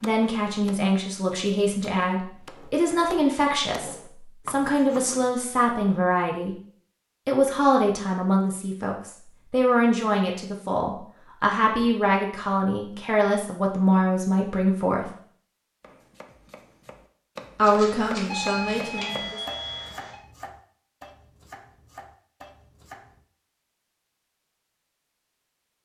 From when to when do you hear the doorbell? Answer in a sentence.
The doorbell can be heard from 17.6 to 20.1 s.